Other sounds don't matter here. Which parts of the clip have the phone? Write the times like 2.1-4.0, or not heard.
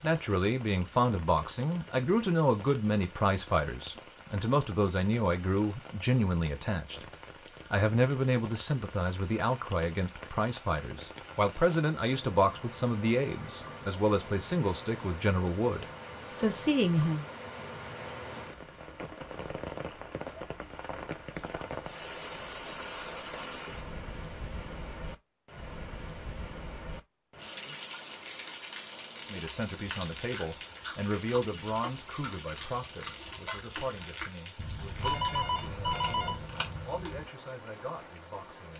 34.5-36.5.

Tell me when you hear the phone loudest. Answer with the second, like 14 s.
35 s.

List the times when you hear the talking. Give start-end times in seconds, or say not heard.
0.0-7.0, 7.7-17.2, 29.3-38.7.